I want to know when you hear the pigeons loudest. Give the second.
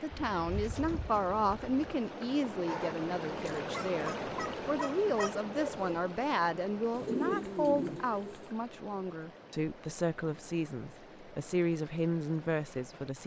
7 s.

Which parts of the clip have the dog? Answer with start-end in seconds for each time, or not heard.
2.6-6.0.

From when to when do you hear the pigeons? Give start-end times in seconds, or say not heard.
0.1-2.0, 6.9-8.5.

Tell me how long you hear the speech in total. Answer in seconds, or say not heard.
13 s.